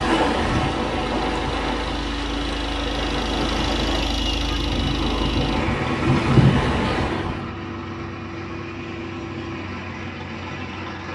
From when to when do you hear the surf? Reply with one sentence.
The surf can be heard from 0.0 to 7.5 s.